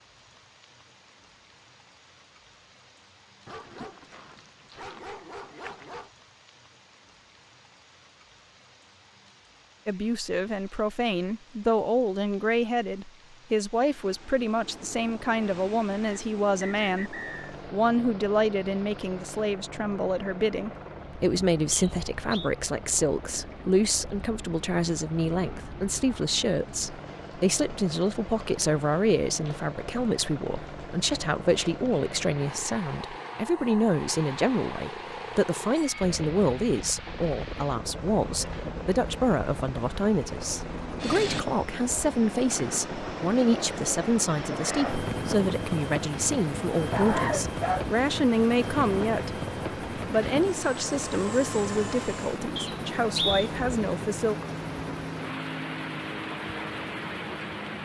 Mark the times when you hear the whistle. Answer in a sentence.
You can hear the whistle from 16.1 to 17.6 s, from 21.7 to 22.5 s and from 52.5 to 53.5 s.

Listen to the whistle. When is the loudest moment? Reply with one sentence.
The loudest moment of the whistle is at 53 seconds.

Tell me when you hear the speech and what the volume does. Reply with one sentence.
The speech can be heard from 9.8 to 54.4 s, at a steady volume.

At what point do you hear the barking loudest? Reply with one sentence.
The volume of the barking peaks at 47 seconds.